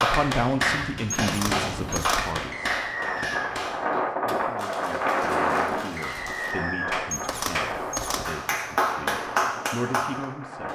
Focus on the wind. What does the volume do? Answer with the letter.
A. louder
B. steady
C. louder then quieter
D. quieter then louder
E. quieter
C.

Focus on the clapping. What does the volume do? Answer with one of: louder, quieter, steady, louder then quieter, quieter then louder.
quieter then louder.